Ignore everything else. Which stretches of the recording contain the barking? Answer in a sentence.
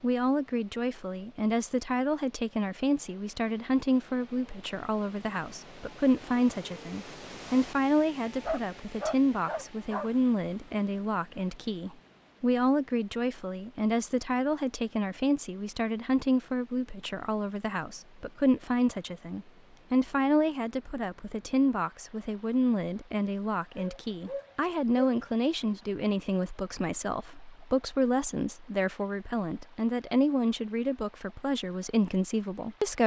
The barking can be heard from 8.2 to 10.1 s and from 23.8 to 25.2 s.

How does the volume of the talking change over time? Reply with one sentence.
The volume of the talking stays about the same.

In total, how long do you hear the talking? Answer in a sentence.
The talking can be heard for 33 seconds in total.